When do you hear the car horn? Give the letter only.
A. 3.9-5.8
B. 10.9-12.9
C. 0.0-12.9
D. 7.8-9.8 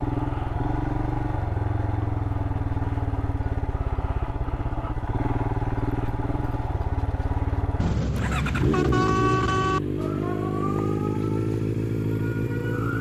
D.